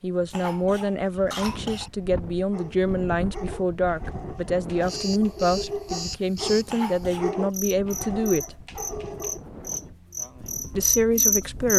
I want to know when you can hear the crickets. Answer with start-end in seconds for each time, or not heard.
4.8-11.7.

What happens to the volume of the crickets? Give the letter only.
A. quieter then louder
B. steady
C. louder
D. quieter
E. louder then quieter
C.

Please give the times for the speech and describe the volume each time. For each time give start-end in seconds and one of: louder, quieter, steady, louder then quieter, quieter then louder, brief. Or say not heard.
0.0-8.6 steady
10.8-11.7 brief.